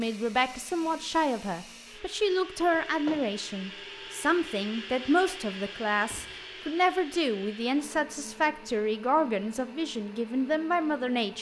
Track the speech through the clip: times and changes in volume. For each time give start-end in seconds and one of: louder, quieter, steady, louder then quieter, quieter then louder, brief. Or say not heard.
0.0-11.3 steady.